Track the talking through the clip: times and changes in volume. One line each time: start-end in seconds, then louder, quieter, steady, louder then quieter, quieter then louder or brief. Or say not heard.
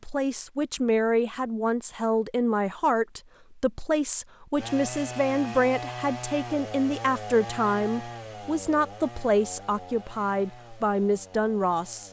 0.0-12.0 steady.